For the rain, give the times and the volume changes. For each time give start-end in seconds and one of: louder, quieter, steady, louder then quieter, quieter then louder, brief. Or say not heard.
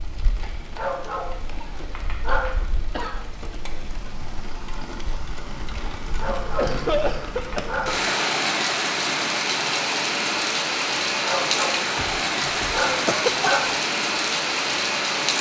0.0-15.3 louder.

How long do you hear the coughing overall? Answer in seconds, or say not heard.
5 s.